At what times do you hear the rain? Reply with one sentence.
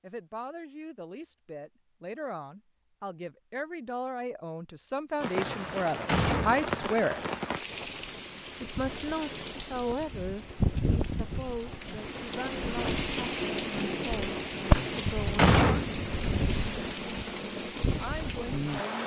The rain can be heard from 5.2 to 19.0 s.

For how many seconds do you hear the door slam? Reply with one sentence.
The door slam can be heard for 3 seconds in total.